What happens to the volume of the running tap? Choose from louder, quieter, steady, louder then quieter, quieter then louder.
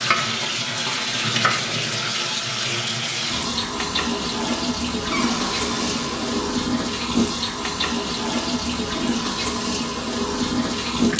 steady.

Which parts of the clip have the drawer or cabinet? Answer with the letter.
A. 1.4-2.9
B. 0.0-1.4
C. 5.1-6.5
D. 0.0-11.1
C.